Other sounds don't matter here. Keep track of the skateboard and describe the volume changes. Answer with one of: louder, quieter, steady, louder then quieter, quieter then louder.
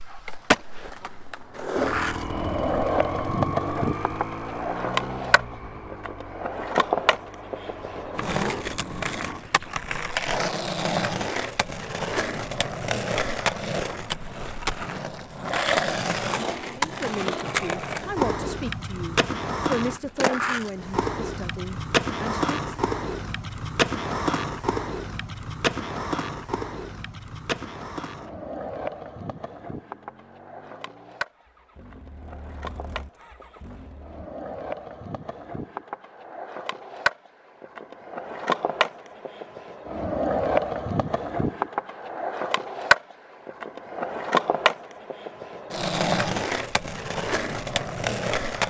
quieter then louder.